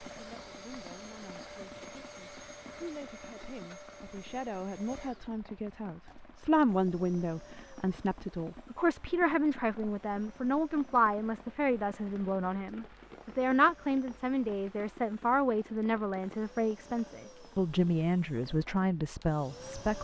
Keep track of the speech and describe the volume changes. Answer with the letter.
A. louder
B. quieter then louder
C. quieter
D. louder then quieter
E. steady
A.